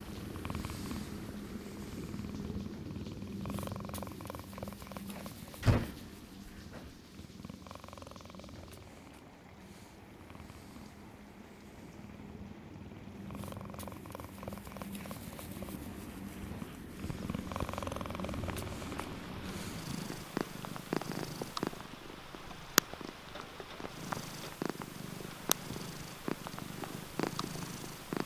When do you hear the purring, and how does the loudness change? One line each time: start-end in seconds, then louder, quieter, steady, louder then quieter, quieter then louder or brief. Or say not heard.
0.0-28.2 quieter then louder.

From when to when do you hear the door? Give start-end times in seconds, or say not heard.
5.1-6.9.